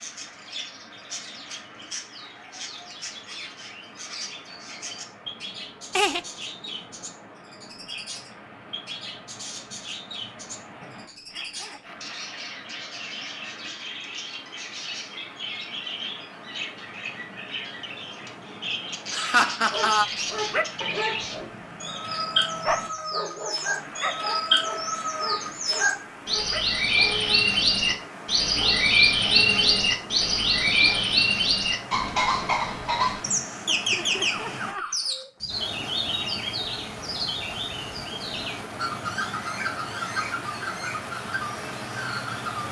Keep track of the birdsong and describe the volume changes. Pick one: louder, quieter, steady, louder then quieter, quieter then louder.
louder then quieter.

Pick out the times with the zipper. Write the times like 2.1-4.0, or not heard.
10.8-12.1.